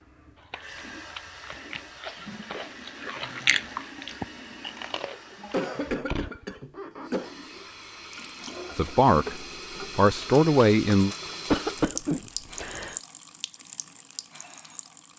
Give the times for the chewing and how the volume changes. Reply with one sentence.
The chewing can be heard from 0.3 to 6.3 s, getting louder then quieter.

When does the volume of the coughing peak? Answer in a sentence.
The volume of the coughing peaks at 12 seconds.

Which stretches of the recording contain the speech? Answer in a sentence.
You can hear the speech from 8.8 to 11.2 s.